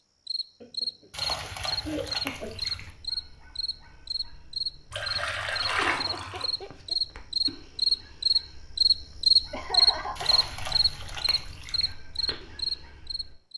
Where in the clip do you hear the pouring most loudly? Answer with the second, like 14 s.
6 s.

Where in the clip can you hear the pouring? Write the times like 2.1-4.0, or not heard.
1.1-2.9, 4.9-6.5, 10.2-11.9.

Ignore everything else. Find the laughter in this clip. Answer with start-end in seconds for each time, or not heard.
0.6-2.6, 5.2-7.0, 9.5-10.6.